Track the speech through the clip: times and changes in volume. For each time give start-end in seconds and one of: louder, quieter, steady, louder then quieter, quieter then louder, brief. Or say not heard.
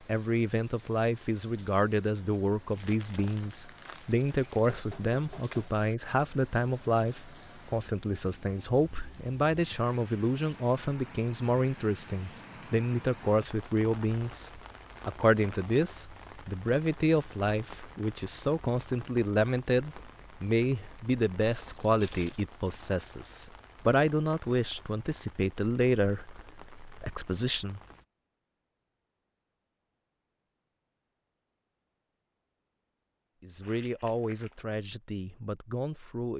0.1-27.8 steady
33.4-36.3 brief.